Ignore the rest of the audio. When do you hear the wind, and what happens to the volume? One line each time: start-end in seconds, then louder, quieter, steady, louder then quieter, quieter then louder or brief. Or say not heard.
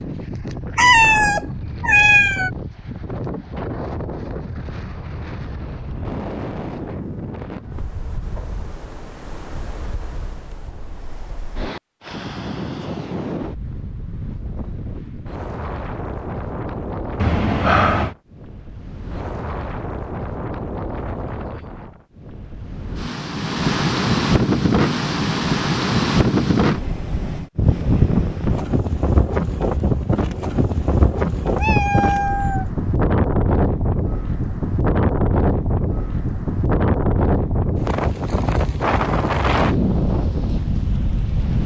0.0-41.6 louder.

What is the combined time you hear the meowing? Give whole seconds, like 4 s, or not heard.
4 s.